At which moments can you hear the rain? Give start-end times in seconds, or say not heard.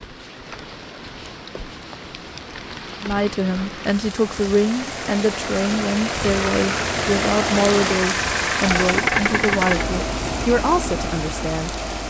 0.0-12.0.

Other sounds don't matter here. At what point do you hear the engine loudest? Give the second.
9 s.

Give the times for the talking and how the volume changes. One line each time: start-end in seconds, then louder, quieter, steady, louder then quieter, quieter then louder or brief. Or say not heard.
3.0-12.0 steady.